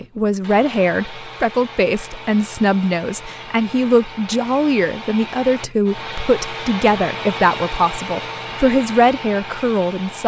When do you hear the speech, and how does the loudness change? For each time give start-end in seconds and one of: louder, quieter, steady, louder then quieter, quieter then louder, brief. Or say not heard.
0.0-10.2 steady.